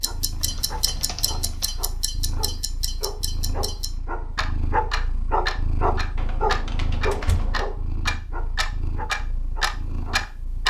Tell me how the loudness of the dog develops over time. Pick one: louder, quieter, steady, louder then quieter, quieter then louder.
louder then quieter.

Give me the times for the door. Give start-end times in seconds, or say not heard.
0.4-1.3, 7.1-7.7.